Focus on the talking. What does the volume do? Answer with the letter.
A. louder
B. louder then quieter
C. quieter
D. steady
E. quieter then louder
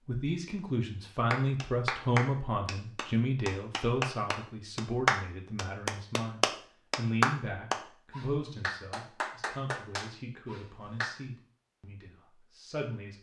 C.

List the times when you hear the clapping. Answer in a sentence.
The clapping can be heard from 1.3 to 11.2 s.